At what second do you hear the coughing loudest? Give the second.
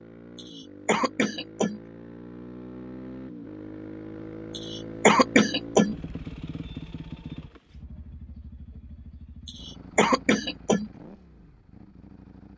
5 s.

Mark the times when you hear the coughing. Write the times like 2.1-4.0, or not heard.
0.3-1.8, 4.5-6.0, 9.4-10.9.